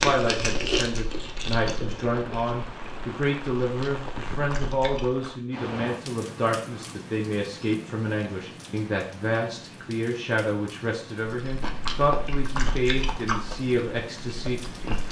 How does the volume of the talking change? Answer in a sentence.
The volume of the talking stays about the same.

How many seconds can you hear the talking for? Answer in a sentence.
You can hear the talking for 15 seconds altogether.